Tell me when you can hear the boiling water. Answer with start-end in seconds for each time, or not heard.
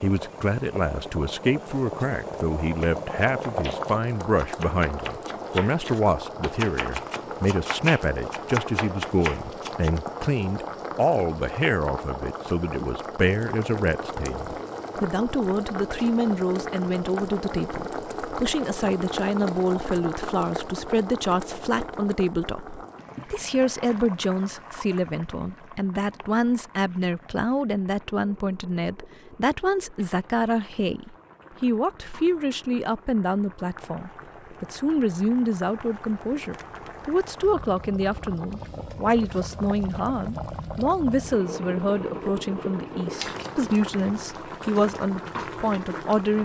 0.0-46.4.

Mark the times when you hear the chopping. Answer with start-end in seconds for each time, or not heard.
2.8-9.9.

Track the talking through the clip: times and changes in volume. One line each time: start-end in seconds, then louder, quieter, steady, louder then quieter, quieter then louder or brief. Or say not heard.
0.0-46.4 steady.